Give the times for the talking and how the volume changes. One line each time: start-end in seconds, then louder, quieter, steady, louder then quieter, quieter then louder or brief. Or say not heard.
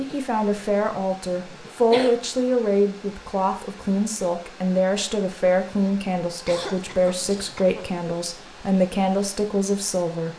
0.0-10.3 steady.